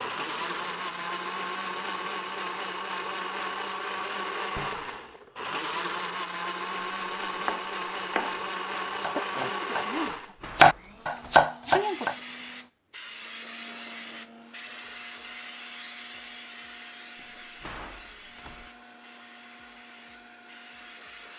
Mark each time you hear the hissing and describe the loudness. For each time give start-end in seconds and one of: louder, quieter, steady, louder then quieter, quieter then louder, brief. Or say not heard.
0.0-2.5 brief
11.8-21.3 quieter.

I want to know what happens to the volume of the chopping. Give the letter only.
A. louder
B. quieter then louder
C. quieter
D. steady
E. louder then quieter
A.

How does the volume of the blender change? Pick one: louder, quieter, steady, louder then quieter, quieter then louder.
quieter.